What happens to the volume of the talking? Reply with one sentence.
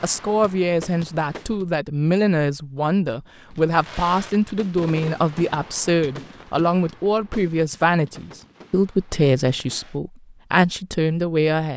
The volume of the talking stays about the same.